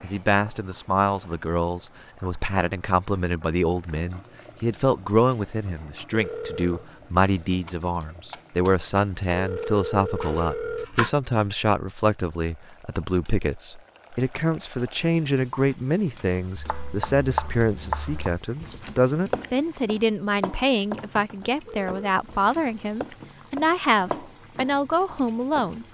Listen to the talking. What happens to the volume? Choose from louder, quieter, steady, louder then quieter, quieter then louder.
steady.